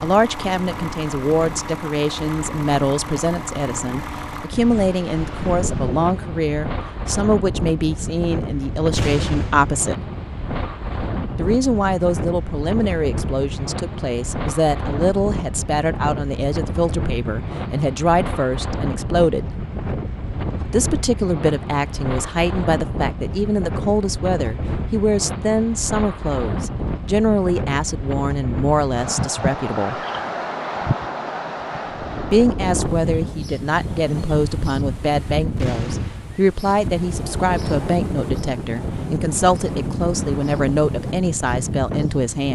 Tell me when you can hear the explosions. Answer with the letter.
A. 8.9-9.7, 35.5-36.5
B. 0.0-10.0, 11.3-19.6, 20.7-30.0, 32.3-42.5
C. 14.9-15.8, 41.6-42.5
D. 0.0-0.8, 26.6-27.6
A.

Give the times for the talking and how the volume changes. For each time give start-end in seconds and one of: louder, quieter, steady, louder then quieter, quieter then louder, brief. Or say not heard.
0.0-10.0 steady
11.3-19.6 steady
20.7-30.0 steady
32.3-42.5 steady.